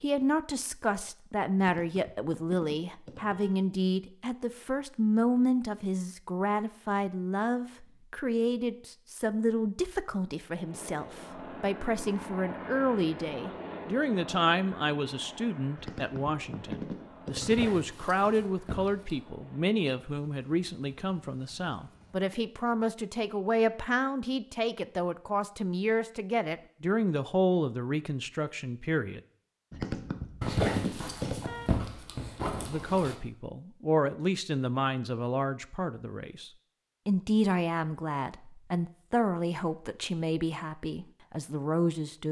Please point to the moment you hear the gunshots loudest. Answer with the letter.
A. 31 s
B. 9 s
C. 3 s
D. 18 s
A.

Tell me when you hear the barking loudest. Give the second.
31 s.